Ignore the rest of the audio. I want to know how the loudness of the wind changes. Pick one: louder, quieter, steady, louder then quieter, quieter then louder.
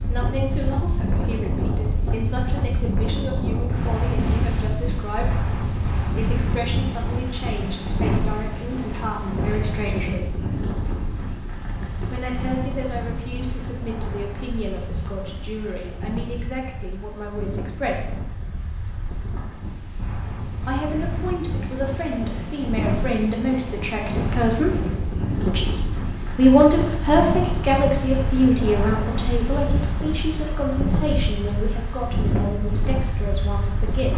quieter then louder.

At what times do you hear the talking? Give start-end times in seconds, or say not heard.
0.0-10.4, 12.1-18.2, 20.6-24.8, 25.4-34.1.